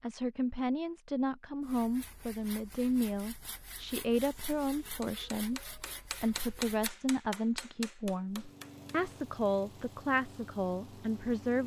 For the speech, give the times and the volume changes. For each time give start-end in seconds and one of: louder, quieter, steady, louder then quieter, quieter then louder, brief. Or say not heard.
0.0-11.6 steady.